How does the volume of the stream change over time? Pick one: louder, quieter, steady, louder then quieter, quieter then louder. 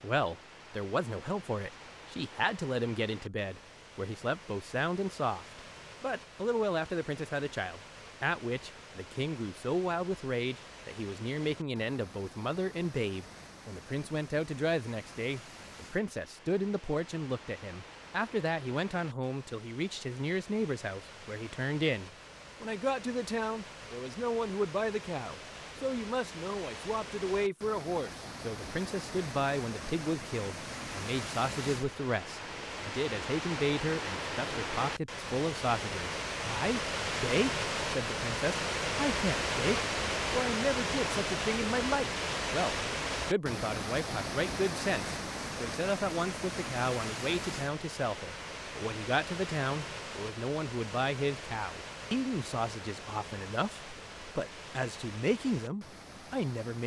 louder then quieter.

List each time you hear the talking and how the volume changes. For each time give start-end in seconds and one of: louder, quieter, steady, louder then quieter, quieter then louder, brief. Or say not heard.
0.0-56.8 steady.